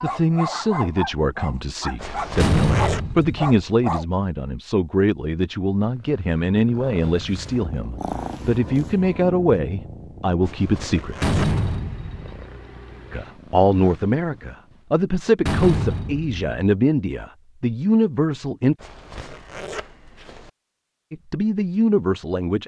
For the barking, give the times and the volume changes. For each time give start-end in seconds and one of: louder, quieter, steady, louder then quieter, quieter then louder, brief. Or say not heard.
0.0-4.0 quieter then louder.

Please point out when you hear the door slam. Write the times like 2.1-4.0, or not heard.
2.4-3.5, 11.2-12.4, 15.4-16.4.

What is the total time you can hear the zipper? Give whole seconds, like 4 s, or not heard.
4 s.